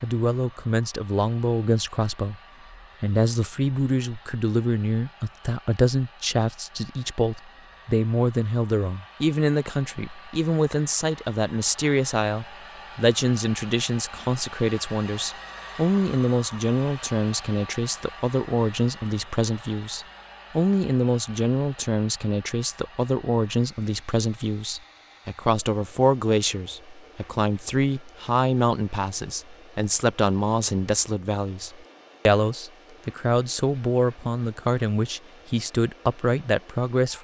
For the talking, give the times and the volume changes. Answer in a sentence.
You can hear the talking from 0.0 to 37.2 s, at a steady volume.